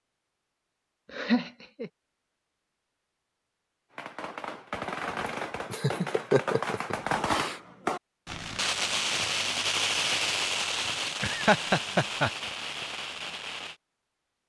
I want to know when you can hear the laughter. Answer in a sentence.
The laughter can be heard from 1.1 to 1.9 s, from 5.2 to 7.6 s and from 11.2 to 12.3 s.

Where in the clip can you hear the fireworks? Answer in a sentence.
You can hear the fireworks from 3.9 to 13.8 s.